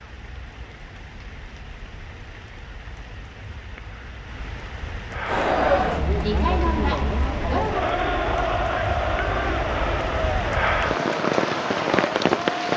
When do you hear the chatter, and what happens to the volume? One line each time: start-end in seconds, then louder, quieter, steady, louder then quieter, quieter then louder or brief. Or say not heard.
5.2-12.7 quieter.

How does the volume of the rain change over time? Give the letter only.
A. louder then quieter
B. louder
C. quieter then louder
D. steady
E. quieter
B.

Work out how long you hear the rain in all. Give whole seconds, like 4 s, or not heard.
13 s.